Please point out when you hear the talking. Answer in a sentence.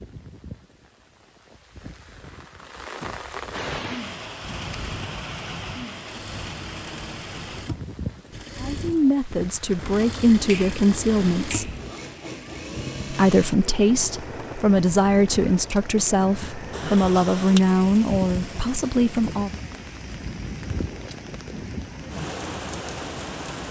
The talking can be heard from 8.6 to 11.8 s and from 13.1 to 19.6 s.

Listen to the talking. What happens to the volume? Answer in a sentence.
The volume of the talking stays about the same.